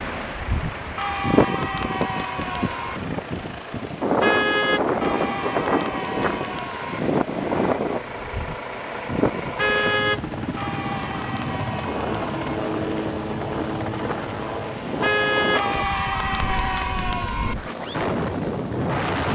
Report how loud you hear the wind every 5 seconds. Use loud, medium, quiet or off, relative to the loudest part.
loud, loud, medium, loud.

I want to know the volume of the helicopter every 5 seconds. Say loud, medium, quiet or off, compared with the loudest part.
medium, medium, loud, medium.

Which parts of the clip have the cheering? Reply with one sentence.
The cheering can be heard from 0.9 to 3.0 s, from 5.0 to 7.0 s, from 10.6 to 12.6 s and from 15.6 to 17.6 s.